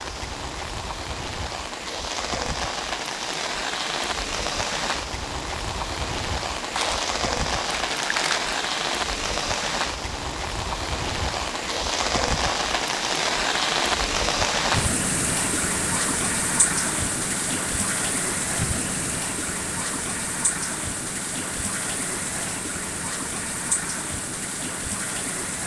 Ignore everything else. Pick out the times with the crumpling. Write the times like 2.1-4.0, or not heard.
6.8-8.6.